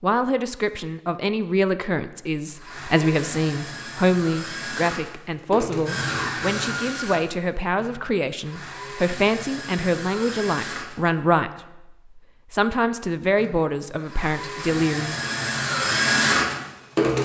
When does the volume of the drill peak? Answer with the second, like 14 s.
16 s.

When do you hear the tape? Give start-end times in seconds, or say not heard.
not heard.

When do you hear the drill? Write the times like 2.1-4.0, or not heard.
2.4-10.9, 13.3-17.2.